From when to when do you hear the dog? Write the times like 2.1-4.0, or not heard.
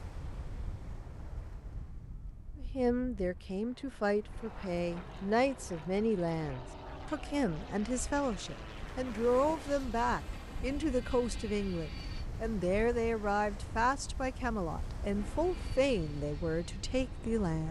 not heard.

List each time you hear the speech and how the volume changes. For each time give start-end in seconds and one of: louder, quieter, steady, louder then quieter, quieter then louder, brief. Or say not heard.
2.5-17.6 steady.